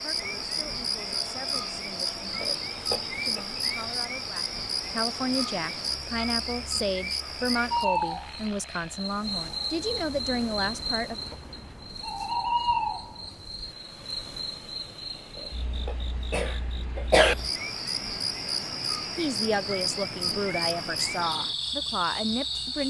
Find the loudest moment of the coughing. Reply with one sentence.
The loudest moment of the coughing is at 17 seconds.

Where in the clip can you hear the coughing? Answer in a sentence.
You can hear the coughing from 2.4 to 3.5 s and from 15.3 to 17.4 s.